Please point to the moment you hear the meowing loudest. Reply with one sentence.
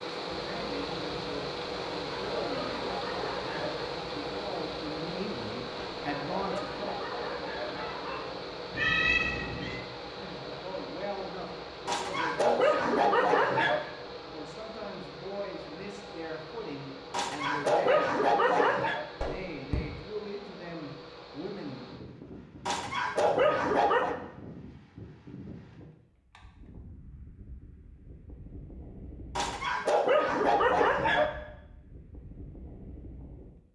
The volume of the meowing peaks at 9 seconds.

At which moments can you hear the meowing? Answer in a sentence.
You can hear the meowing from 8.7 to 9.8 s and from 19.2 to 19.8 s.